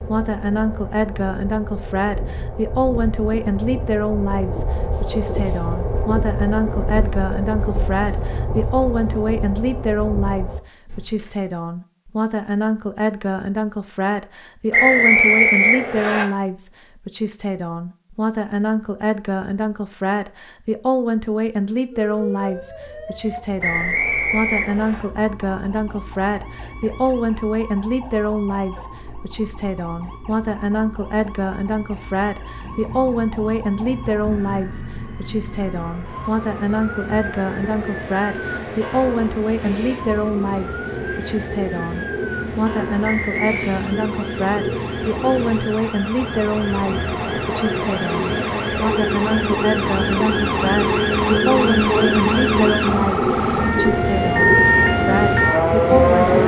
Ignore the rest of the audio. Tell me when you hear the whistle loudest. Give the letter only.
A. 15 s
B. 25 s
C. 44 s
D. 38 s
A.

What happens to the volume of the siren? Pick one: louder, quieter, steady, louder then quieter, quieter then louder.
louder.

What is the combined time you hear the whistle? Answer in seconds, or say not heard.
4 s.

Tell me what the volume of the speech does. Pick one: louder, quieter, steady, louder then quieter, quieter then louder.
steady.